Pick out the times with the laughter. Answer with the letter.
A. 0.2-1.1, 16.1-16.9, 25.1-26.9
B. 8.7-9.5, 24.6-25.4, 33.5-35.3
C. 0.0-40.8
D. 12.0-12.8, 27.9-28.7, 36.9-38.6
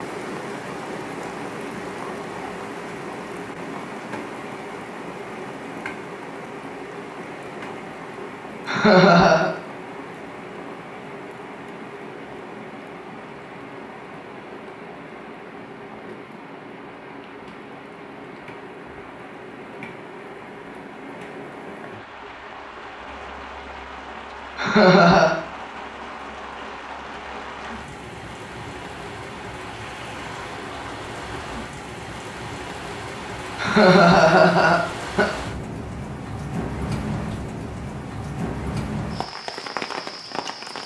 B.